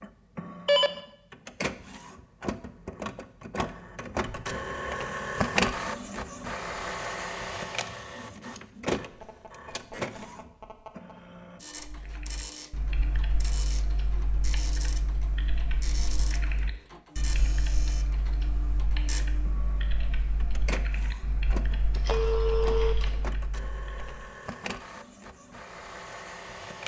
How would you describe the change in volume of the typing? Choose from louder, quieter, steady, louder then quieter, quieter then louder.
steady.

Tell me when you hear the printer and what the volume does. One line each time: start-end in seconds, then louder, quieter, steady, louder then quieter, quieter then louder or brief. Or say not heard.
0.0-26.8 quieter.